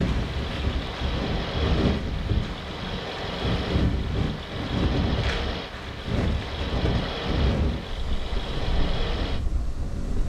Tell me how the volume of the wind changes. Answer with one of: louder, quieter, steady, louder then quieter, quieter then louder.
quieter.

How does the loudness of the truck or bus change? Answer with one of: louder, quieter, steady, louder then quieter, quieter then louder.
steady.